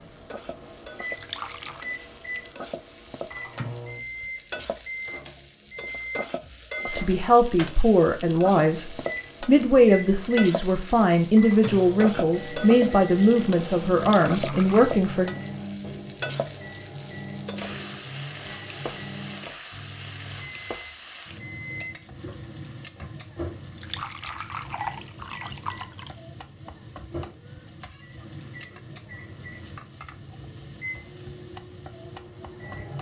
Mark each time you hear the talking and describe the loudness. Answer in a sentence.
You can hear the talking from 6.9 to 15.3 s, at a steady volume.